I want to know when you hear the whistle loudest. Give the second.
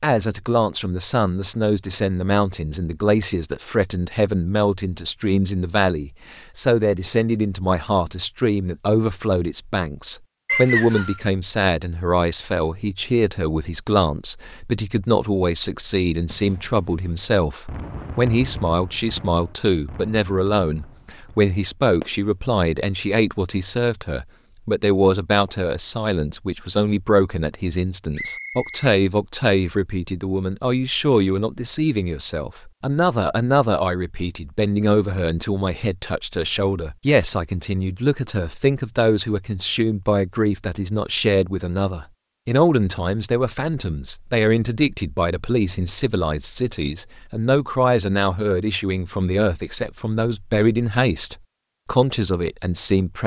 11 s.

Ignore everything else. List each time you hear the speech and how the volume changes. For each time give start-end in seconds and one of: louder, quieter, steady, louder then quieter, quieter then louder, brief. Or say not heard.
0.0-53.2 steady.